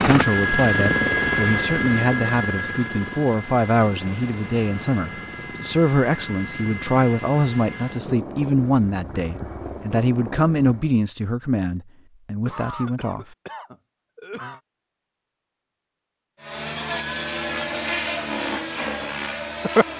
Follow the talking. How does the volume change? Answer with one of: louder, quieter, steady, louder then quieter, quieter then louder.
steady.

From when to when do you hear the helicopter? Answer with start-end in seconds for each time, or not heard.
0.0-10.9, 16.4-19.9.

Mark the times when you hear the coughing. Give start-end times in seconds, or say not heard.
12.4-14.6.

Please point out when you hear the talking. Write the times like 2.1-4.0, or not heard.
0.0-13.2.